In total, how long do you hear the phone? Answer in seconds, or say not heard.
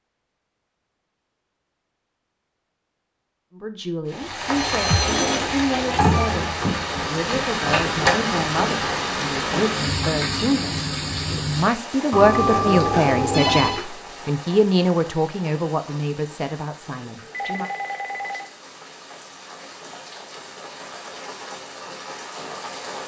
4 s.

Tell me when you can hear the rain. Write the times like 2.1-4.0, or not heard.
4.0-23.0.